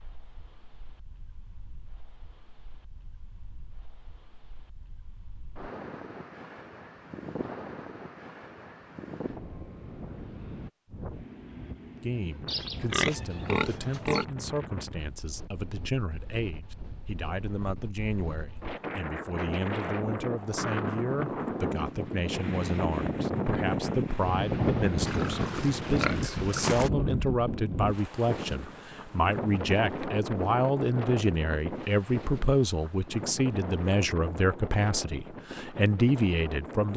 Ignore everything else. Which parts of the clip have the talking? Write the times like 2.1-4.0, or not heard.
12.0-36.9.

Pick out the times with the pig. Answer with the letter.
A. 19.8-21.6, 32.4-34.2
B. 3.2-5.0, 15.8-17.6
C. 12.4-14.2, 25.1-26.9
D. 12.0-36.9
C.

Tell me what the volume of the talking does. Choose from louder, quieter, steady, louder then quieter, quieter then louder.
louder.